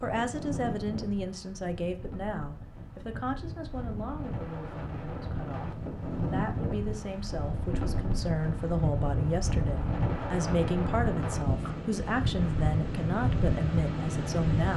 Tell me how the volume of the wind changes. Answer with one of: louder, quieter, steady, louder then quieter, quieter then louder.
louder.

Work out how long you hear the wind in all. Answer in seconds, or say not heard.
15 s.